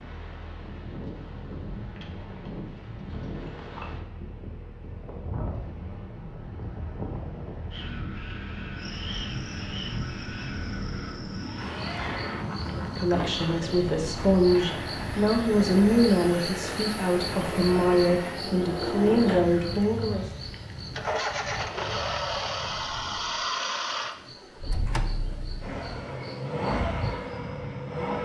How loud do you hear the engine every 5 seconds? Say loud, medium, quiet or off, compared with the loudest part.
quiet, quiet, medium, loud, loud, loud.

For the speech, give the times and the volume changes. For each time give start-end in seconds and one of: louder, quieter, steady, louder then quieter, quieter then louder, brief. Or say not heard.
12.8-20.4 steady.